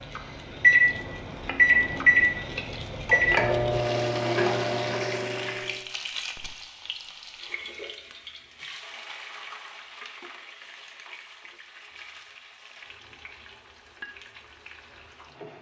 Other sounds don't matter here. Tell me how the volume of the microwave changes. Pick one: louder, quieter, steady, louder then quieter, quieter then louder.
quieter.